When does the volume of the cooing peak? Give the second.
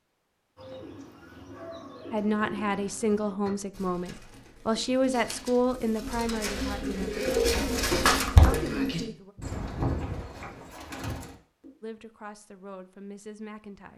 8 s.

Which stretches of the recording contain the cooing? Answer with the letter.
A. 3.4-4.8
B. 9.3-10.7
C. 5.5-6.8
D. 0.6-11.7
D.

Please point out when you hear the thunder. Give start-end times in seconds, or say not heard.
9.3-10.7.